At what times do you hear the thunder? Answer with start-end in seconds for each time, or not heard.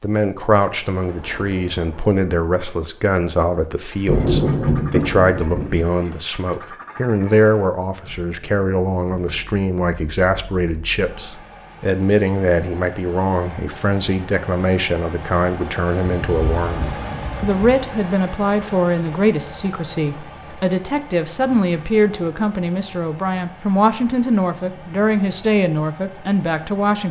4.0-5.8, 16.2-17.6.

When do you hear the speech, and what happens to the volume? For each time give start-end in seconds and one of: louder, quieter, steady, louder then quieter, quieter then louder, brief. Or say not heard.
0.0-27.0 steady.